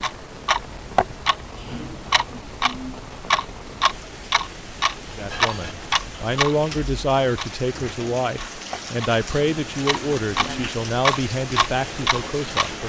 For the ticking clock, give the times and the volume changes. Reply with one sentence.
The ticking clock can be heard from 0.0 to 12.8 s, getting quieter then louder.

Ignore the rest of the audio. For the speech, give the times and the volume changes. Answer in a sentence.
The speech can be heard from 5.2 to 12.8 s, at a steady volume.